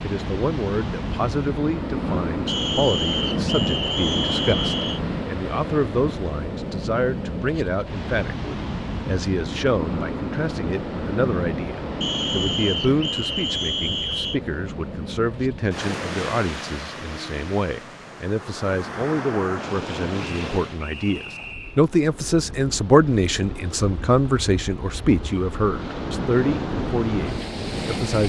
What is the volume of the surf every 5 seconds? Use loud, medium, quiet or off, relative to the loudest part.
loud, loud, loud, medium, medium, loud.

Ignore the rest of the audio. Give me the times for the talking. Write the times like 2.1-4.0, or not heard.
0.0-28.2.